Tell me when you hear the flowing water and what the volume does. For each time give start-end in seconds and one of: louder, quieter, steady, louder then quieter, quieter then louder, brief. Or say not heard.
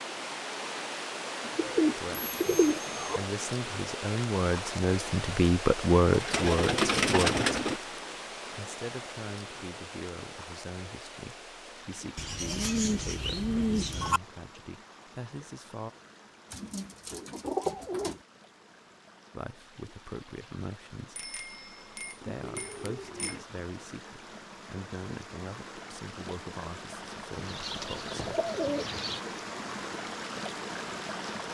0.0-31.5 quieter then louder.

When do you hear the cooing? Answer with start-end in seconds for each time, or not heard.
1.4-3.2, 6.1-7.8, 12.2-14.2, 16.5-18.2, 22.2-23.4, 27.4-29.2.